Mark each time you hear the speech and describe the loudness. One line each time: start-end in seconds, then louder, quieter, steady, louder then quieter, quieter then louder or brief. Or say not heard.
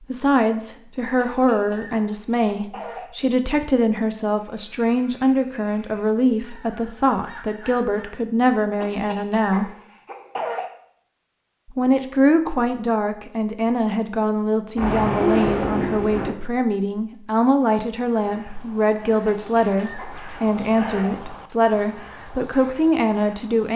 0.1-9.7 steady
11.7-23.7 steady.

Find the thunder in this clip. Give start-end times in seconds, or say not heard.
14.8-16.3.